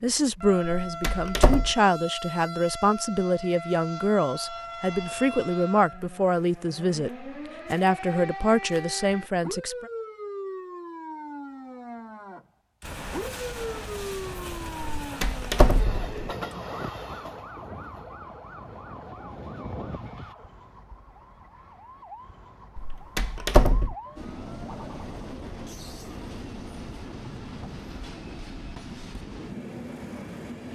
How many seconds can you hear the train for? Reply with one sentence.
The train can be heard for 14 seconds in total.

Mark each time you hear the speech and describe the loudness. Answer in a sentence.
The speech can be heard from 0.0 to 9.9 s, at a steady volume.